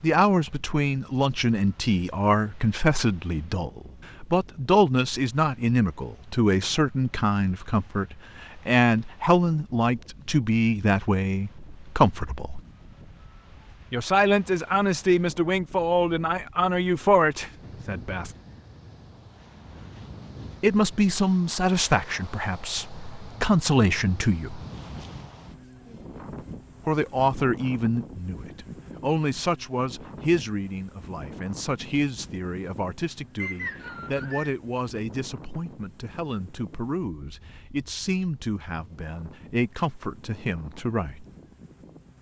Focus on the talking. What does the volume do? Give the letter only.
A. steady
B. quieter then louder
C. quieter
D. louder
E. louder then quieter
C.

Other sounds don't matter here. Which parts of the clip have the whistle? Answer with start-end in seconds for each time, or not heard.
33.4-34.5.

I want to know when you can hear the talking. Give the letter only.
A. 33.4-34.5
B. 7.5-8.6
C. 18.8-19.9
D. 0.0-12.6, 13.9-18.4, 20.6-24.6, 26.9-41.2
D.